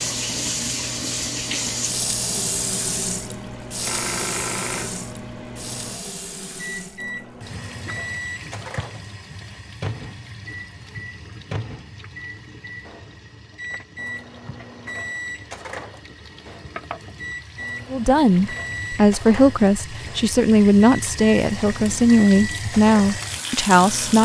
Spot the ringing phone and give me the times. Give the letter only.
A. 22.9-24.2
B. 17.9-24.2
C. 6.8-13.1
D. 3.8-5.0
D.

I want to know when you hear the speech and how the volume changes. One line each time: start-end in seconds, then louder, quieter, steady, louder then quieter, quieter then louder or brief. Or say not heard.
17.9-24.2 steady.